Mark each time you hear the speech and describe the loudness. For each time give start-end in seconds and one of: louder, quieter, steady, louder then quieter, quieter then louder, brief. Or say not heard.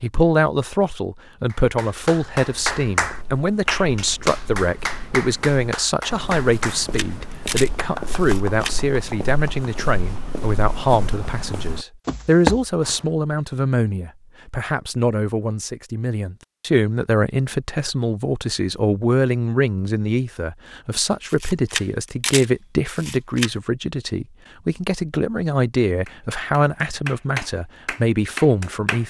0.0-29.0 steady.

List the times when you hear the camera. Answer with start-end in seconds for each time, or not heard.
6.5-8.8, 21.3-23.5.